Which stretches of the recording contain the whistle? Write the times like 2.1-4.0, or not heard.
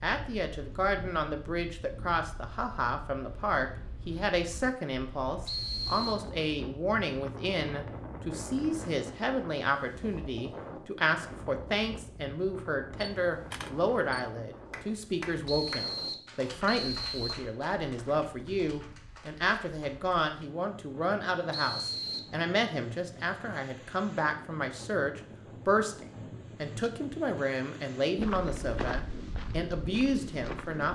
5.5-6.2, 15.4-17.4, 21.5-22.4.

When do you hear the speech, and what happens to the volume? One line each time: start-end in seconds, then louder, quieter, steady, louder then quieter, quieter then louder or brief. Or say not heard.
0.0-30.9 steady.